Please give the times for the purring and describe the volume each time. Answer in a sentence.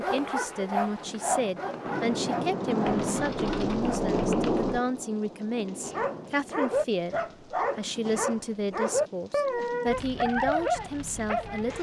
You can't hear the purring here.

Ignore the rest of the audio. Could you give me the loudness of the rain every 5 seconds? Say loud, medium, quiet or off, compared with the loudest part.
loud, quiet, quiet.